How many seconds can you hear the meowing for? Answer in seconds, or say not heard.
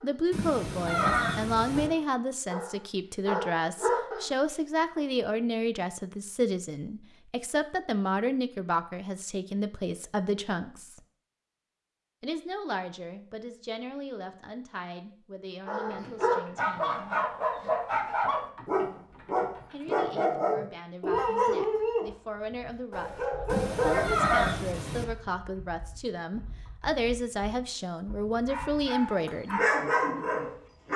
3 s.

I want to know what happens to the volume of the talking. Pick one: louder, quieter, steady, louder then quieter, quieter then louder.
quieter then louder.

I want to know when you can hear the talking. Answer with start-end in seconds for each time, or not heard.
0.0-11.0, 12.2-17.2, 19.7-23.1, 23.8-29.6.